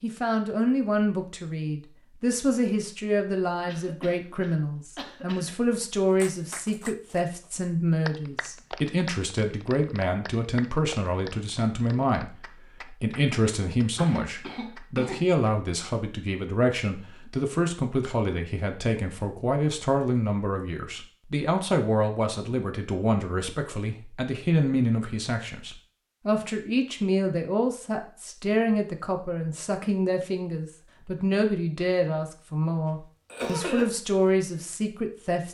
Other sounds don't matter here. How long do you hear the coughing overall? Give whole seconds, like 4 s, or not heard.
4 s.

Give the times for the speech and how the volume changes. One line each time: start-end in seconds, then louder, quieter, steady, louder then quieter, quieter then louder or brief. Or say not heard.
0.0-35.4 steady.